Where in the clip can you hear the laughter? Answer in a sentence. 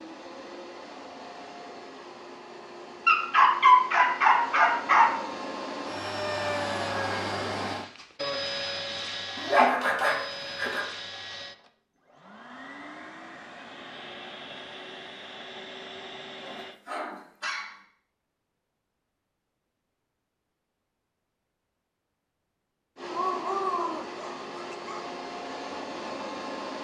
The laughter can't be heard in this clip.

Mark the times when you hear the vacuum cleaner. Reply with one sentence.
The vacuum cleaner can be heard from 0.0 to 16.8 s and from 22.9 to 26.7 s.